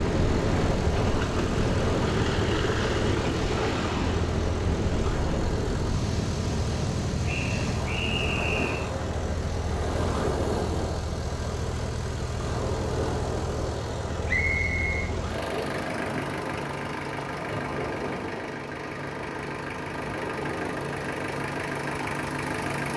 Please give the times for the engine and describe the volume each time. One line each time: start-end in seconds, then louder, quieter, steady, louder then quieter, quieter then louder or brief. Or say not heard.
0.0-22.9 steady.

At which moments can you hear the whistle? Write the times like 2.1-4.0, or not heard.
7.2-8.9, 14.2-15.1.